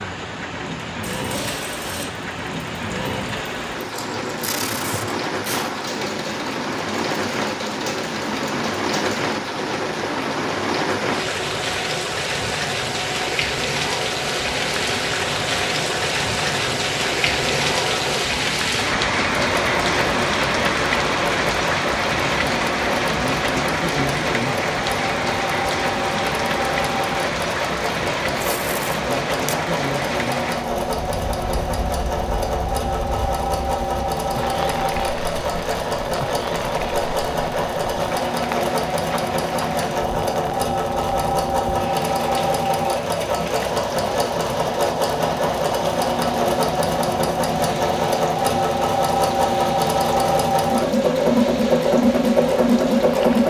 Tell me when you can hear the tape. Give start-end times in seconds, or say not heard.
4.4-5.8, 28.4-29.6.